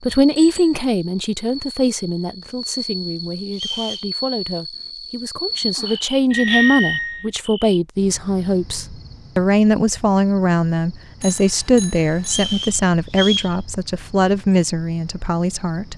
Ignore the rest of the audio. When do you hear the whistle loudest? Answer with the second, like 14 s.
13 s.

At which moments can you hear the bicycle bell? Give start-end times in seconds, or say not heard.
0.3-0.8, 6.3-7.2, 11.2-12.6.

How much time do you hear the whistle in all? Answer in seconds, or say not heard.
2 s.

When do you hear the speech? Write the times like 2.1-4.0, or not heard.
0.0-15.9.